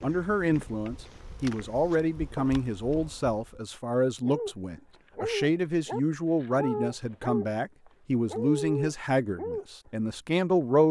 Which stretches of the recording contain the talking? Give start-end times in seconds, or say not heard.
0.0-10.8.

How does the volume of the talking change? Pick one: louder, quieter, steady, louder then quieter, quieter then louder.
steady.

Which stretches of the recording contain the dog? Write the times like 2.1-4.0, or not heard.
4.2-7.5, 8.2-9.7.